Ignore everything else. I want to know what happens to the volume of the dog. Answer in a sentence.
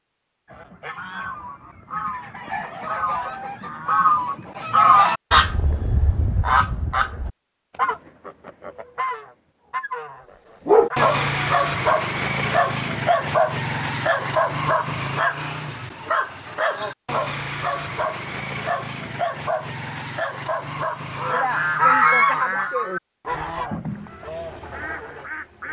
The loudness of the dog goes down.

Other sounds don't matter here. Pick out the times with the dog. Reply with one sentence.
You can hear the dog from 10.7 to 22.1 s.